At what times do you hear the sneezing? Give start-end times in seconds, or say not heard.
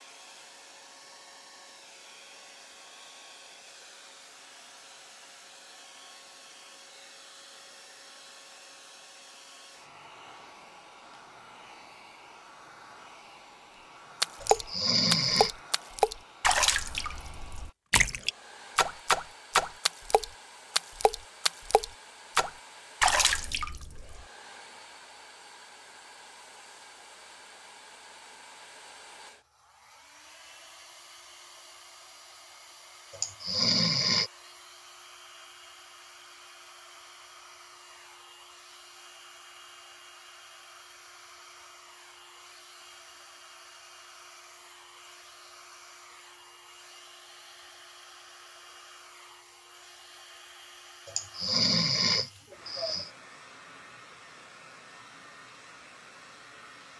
14.4-15.6, 33.1-34.3, 51.0-53.1.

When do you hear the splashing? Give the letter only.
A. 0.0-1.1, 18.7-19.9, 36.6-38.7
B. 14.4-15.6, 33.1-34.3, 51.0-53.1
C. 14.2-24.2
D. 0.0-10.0
C.